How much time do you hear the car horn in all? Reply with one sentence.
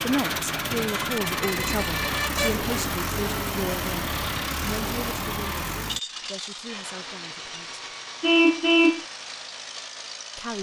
You can hear the car horn for 3 seconds altogether.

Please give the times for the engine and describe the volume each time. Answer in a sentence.
You can hear the engine from 0.0 to 10.5 s, getting quieter.